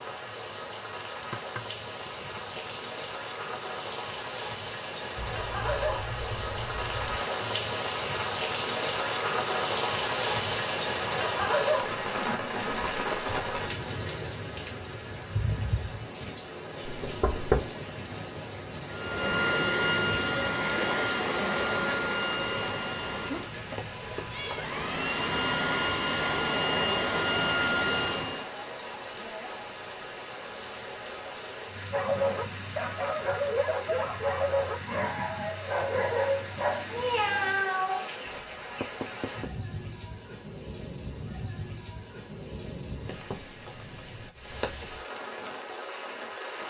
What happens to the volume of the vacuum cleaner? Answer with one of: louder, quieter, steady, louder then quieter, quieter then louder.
quieter then louder.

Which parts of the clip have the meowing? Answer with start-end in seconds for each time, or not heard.
5.2-7.2, 23.7-24.7, 36.9-38.0.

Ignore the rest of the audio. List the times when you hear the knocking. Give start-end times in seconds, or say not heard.
1.3-2.8, 16.9-17.7, 38.2-39.5.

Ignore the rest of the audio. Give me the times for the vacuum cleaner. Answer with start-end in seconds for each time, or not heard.
18.9-28.6.